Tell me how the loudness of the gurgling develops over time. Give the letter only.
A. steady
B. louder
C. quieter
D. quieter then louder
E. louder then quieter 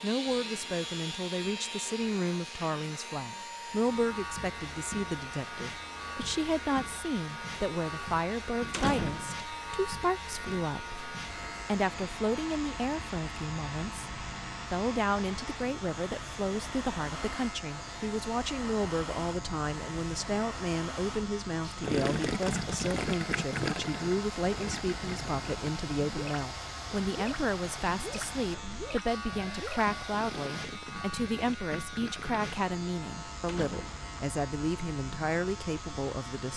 C.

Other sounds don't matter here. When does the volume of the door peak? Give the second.
9 s.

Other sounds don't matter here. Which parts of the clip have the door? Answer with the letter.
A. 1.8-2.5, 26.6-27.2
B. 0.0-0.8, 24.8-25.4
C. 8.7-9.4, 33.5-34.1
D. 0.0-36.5
C.